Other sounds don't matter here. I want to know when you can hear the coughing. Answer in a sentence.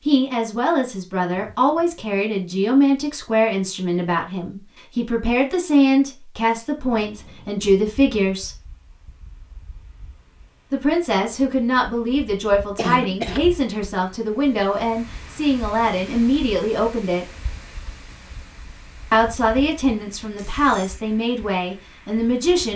The coughing can be heard from 12.8 to 13.4 s.